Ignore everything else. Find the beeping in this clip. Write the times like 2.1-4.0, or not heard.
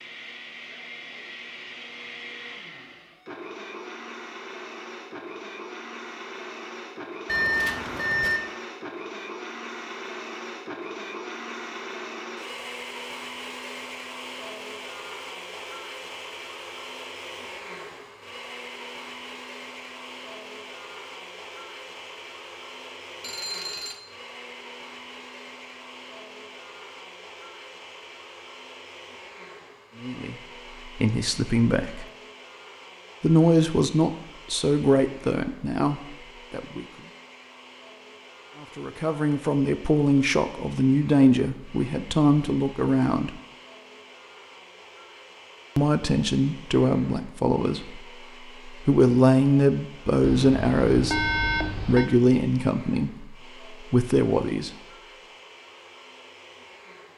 7.2-8.4, 23.2-24.0, 50.2-52.1.